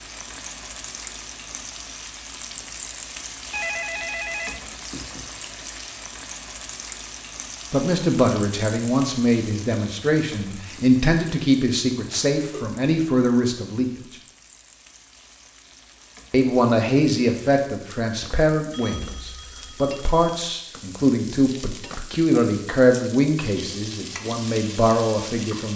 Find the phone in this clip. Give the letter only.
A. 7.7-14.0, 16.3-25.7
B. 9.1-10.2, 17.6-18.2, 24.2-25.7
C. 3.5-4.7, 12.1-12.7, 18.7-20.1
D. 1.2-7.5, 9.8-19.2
C.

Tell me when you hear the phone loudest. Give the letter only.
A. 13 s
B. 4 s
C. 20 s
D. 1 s
B.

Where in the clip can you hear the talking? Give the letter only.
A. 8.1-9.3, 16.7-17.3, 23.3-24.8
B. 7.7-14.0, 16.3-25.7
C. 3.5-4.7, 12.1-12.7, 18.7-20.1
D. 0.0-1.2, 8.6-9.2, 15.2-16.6
B.